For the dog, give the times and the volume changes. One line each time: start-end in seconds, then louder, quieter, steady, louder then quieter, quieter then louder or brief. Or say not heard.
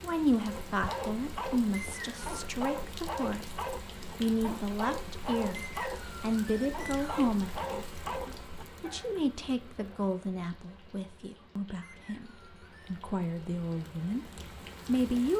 0.4-9.2 steady.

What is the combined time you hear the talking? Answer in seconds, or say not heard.
14 s.